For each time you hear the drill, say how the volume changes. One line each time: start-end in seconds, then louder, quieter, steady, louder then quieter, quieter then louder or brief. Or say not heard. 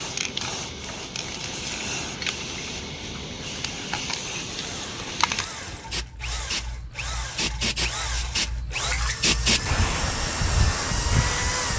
4.5-11.7 louder.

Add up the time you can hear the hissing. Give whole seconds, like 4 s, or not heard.
12 s.